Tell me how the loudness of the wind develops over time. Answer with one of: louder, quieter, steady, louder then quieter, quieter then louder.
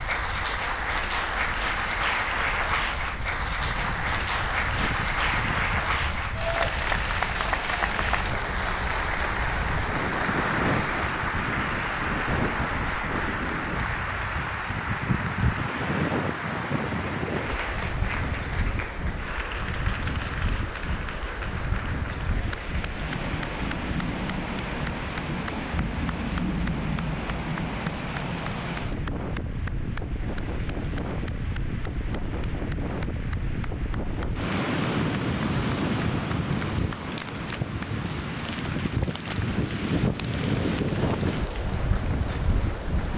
louder.